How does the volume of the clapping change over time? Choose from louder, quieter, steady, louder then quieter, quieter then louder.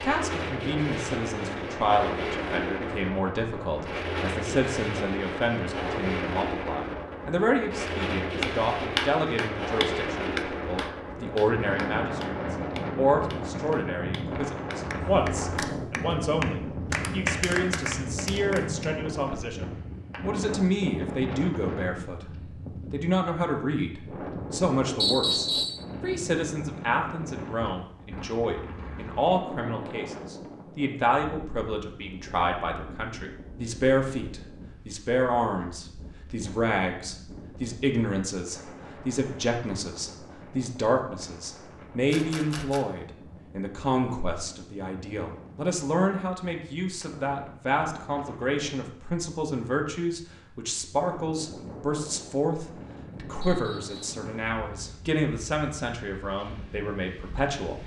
quieter then louder.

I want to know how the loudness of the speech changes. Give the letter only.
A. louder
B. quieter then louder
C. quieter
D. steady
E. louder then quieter
D.